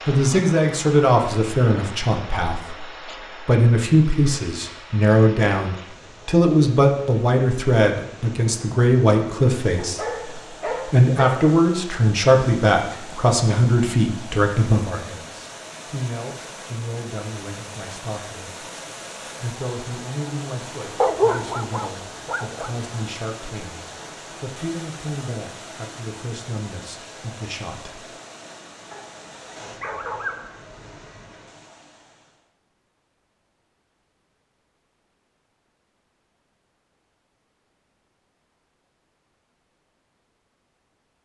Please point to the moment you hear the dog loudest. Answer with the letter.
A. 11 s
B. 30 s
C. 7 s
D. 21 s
D.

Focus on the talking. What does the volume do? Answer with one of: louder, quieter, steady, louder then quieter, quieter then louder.
quieter.